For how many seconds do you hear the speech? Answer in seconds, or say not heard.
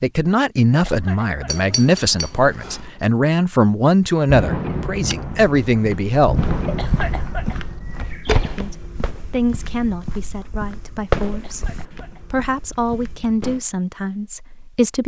13 s.